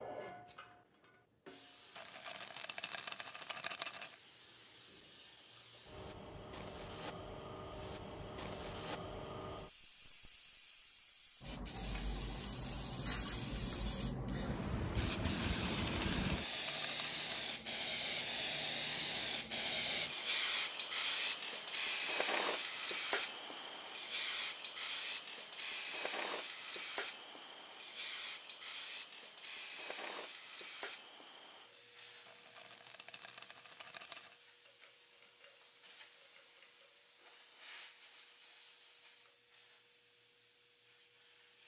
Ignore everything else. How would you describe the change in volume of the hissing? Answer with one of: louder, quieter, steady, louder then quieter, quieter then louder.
louder then quieter.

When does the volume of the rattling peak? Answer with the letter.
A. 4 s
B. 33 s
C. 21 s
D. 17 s
A.